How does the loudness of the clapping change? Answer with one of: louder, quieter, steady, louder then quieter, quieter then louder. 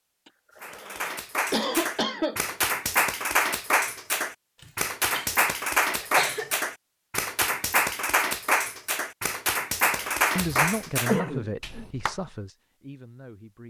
steady.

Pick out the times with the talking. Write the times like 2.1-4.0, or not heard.
10.3-13.6.